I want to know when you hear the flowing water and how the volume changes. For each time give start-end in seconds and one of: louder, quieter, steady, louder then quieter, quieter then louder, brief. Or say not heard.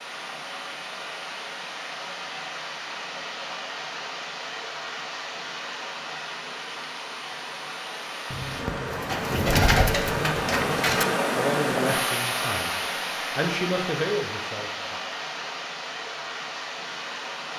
0.0-17.5 louder then quieter.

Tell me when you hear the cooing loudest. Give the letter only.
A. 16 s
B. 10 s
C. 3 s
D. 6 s
B.